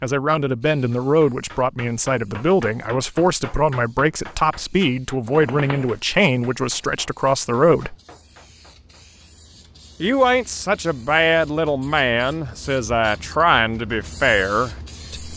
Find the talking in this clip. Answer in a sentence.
The talking can be heard from 0.0 to 8.0 s and from 10.0 to 15.3 s.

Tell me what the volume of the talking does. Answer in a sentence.
The loudness of the talking stays about the same.